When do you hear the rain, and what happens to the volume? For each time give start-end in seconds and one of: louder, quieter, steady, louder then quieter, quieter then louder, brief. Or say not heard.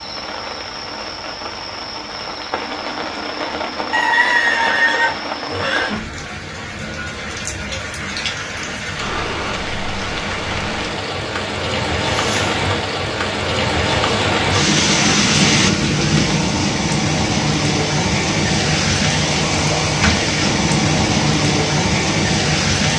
0.0-22.9 louder.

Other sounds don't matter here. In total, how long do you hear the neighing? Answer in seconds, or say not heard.
2 s.